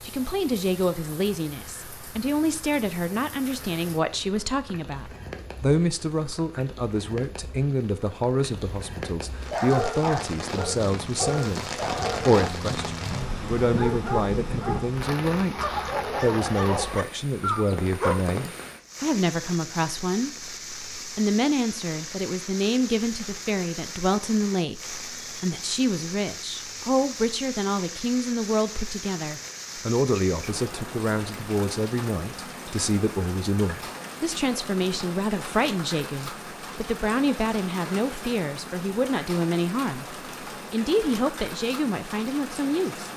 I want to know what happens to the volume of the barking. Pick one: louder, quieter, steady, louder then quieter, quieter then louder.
steady.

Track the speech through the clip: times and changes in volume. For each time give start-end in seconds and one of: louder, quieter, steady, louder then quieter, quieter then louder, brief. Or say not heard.
0.0-43.1 steady.